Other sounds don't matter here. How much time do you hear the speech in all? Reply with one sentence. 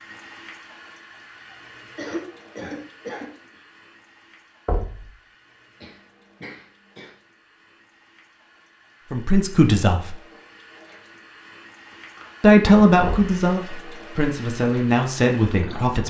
The speech can be heard for 5 seconds in total.